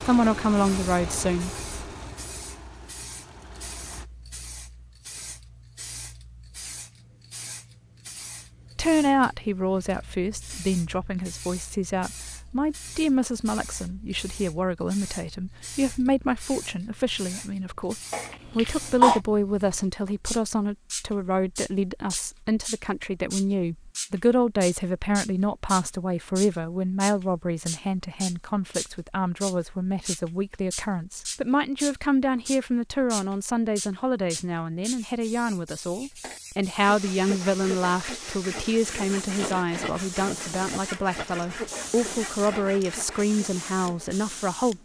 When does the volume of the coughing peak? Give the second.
19 s.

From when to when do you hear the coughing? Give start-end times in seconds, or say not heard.
18.1-19.2, 39.4-40.7.